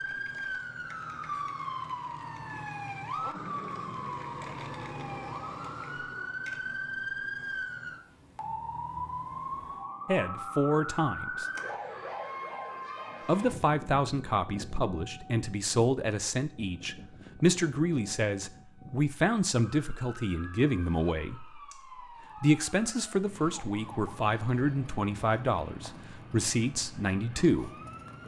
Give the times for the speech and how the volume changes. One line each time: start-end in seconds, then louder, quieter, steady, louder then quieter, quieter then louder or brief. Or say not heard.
10.1-11.4 brief
13.2-27.8 steady.